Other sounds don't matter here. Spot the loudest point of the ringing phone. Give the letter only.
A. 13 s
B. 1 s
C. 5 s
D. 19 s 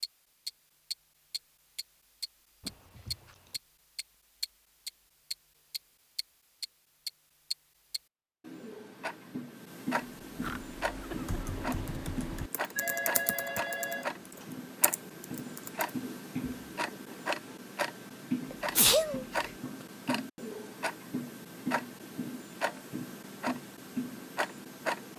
A.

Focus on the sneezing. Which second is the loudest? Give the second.
19 s.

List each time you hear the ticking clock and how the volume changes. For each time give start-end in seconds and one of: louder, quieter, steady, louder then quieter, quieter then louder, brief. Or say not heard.
0.0-25.1 steady.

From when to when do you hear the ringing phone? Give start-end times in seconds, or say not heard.
12.8-14.5.